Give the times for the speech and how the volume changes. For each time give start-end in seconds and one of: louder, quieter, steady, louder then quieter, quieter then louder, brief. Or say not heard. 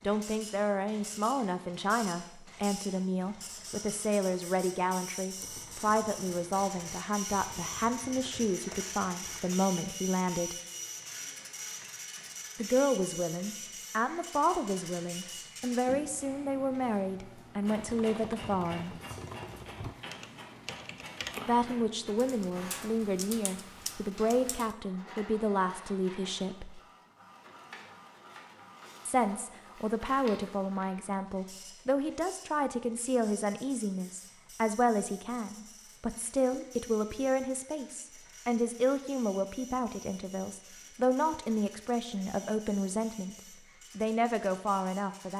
0.0-10.6 steady
12.6-18.9 steady
21.4-26.8 steady
29.1-43.4 steady
44.0-45.3 brief.